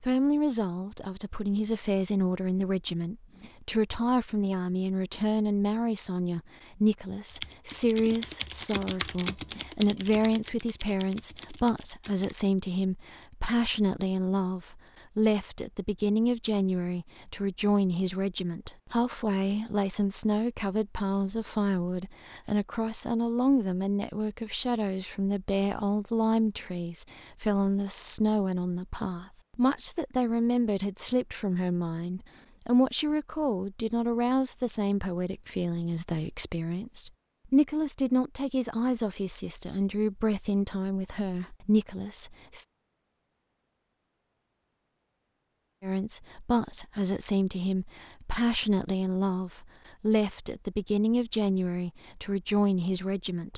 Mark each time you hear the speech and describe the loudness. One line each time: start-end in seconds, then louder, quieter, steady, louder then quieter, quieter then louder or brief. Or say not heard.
0.0-42.6 steady
45.8-53.5 steady.